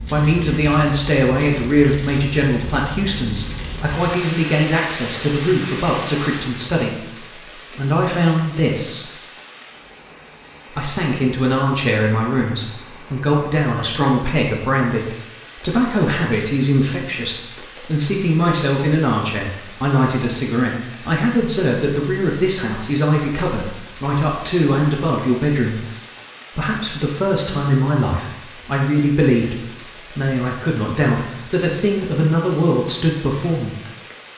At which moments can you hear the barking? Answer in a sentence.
The barking can't be heard in this clip.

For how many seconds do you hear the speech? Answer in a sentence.
The speech can be heard for 31 seconds in total.